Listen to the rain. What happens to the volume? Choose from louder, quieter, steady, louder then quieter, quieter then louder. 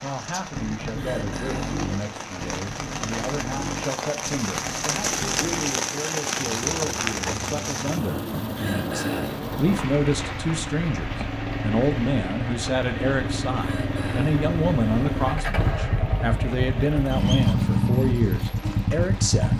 louder then quieter.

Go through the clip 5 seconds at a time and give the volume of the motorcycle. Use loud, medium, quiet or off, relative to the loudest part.
medium, medium, medium, loud.